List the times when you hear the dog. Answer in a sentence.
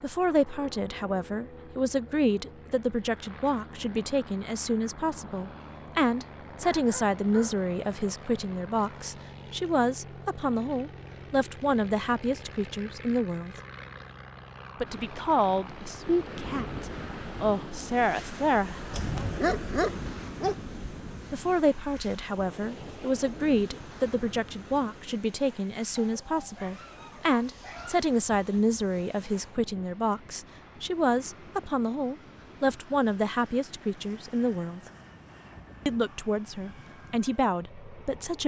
You can hear the dog from 6.6 to 7.6 s, from 18.9 to 20.6 s and from 25.9 to 27.9 s.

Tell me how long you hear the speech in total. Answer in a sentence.
You can hear the speech for 34 seconds altogether.